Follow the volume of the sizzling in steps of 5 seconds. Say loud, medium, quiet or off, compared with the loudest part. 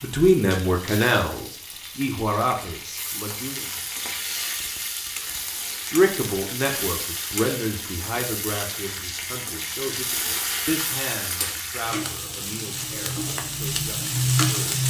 medium, medium, loud.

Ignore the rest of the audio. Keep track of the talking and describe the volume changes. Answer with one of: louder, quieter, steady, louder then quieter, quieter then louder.
quieter.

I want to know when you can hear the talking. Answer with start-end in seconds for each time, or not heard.
0.0-3.7, 5.9-14.8.